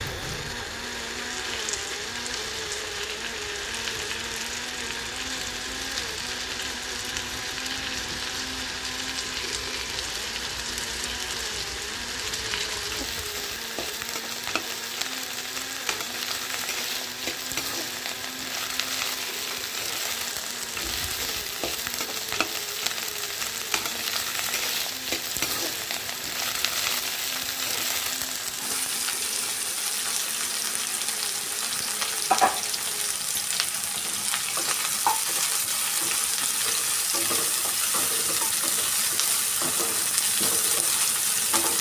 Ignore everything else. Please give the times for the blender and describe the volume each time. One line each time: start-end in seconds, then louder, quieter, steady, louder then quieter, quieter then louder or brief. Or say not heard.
0.0-33.0 quieter.